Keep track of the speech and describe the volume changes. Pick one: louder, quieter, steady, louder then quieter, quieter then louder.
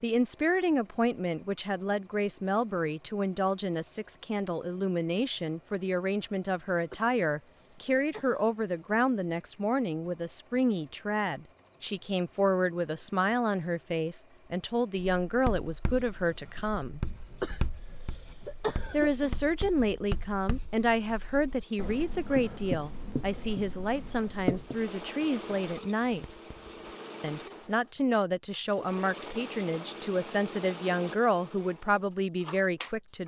steady.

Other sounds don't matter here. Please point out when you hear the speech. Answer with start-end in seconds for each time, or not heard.
0.0-17.0, 18.9-26.4, 27.2-33.2.